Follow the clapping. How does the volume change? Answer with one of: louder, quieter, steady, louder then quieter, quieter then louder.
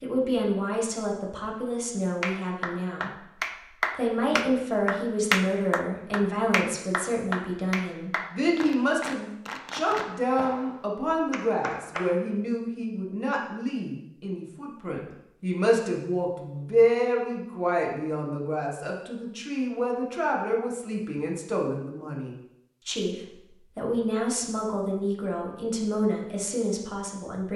quieter.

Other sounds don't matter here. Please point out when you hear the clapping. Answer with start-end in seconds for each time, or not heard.
2.2-12.2.